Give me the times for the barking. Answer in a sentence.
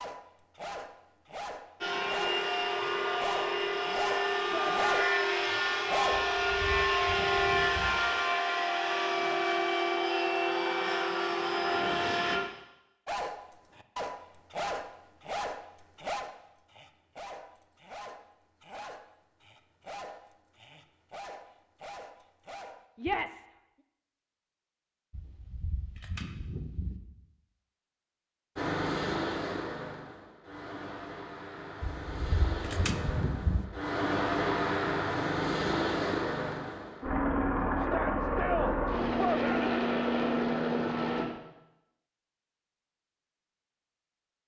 The barking can be heard from 0.0 to 7.0 s and from 13.1 to 22.9 s.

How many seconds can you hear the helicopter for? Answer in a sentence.
The helicopter can be heard for 23 seconds in total.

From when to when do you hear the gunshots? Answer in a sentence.
The gunshots can be heard from 6.1 to 8.0 s, from 25.1 to 27.0 s and from 32.0 to 33.6 s.